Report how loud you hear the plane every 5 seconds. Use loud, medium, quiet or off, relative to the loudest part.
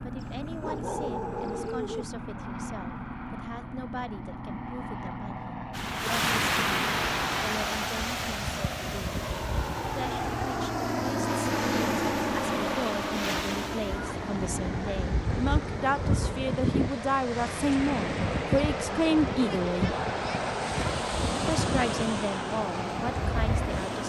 medium, medium, loud, medium, medium.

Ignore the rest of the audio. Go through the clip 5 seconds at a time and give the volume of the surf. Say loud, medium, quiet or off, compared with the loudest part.
off, loud, medium, loud, loud.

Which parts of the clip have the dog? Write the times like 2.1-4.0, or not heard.
0.2-2.1.